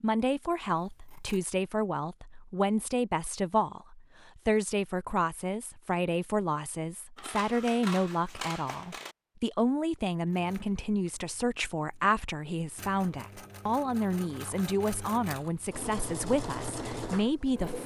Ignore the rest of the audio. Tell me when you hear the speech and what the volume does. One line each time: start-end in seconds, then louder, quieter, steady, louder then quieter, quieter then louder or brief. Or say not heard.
0.0-17.8 steady.